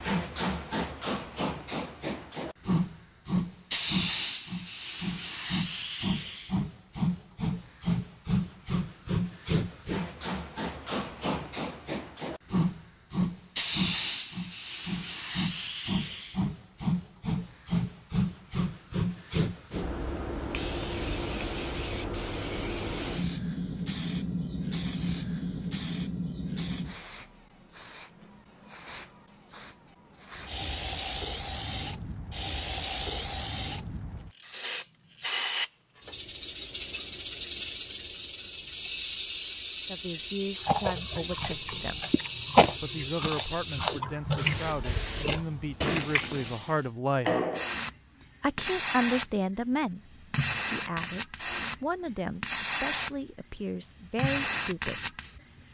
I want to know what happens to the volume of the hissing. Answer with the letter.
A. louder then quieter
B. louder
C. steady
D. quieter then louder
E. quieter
C.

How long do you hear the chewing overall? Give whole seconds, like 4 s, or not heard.
6 s.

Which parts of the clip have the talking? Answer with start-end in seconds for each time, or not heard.
39.9-42.1, 42.8-47.3, 48.4-55.1.